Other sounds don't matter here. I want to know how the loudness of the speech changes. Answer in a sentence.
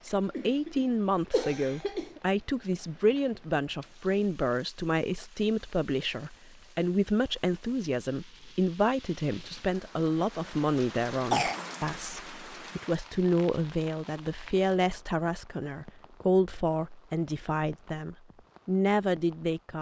The loudness of the speech stays about the same.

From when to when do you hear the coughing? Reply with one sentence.
The coughing can be heard from 0.3 to 2.2 s and from 11.3 to 11.8 s.